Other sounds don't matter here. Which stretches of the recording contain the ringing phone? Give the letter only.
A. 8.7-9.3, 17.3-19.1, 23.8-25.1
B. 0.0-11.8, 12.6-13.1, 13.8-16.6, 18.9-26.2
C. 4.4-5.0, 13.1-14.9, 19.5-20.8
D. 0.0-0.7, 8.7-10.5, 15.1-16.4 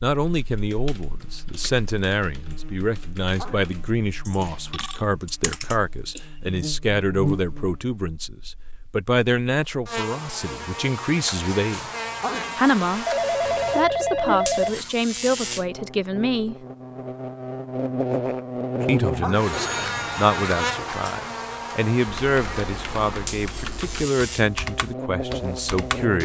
C.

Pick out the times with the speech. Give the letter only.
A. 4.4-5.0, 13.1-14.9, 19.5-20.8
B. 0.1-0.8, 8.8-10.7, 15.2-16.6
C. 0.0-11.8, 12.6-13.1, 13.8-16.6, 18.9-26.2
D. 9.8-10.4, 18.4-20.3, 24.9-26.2
C.